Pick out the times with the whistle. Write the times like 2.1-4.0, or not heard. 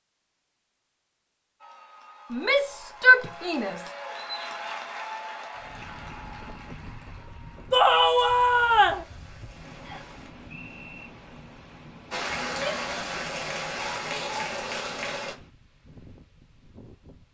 9.8-11.1.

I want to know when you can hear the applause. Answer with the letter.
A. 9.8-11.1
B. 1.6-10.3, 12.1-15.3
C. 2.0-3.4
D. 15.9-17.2
B.